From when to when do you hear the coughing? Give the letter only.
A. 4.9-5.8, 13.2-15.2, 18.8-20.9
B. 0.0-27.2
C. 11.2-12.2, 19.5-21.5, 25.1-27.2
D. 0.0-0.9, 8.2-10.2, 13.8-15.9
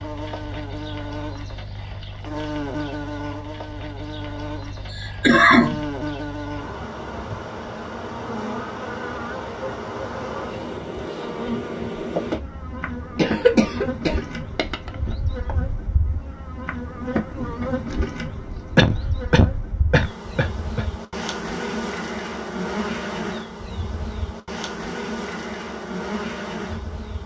A.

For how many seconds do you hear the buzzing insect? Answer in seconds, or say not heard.
27 s.